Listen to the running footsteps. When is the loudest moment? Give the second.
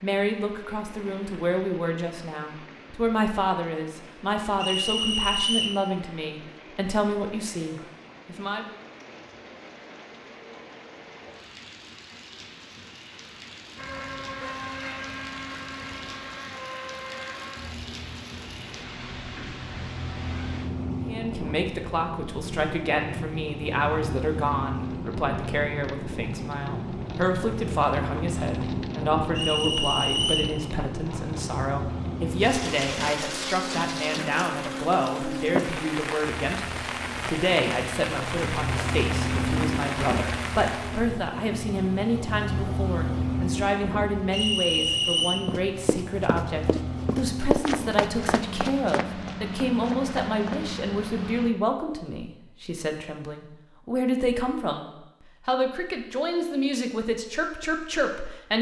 48 s.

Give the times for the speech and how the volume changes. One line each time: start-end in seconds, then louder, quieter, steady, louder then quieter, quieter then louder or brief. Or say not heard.
0.0-8.8 steady
21.1-58.5 steady.